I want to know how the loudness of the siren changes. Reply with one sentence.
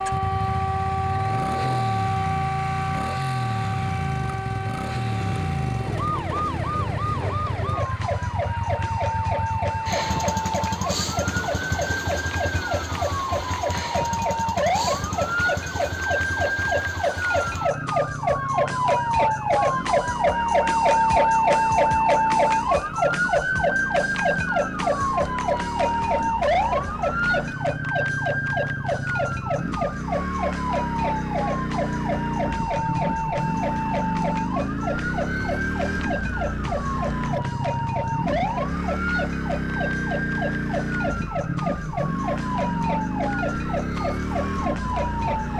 The loudness of the siren goes up, then down.